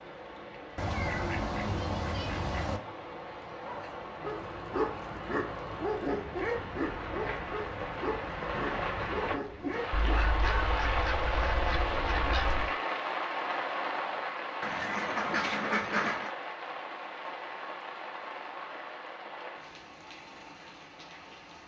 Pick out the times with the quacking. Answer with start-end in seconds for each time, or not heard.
0.8-2.8, 9.9-12.8, 14.6-16.3.